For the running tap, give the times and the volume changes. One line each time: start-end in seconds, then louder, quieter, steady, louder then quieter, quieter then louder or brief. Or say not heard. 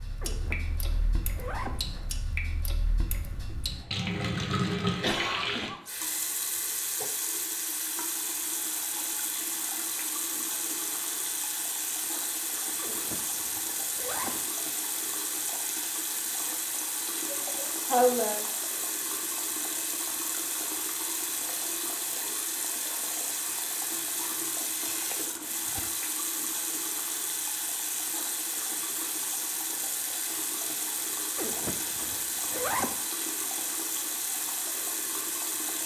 0.0-35.8 steady.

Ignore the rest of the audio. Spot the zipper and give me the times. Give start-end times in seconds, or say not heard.
0.2-2.1, 12.8-14.4, 31.4-33.0.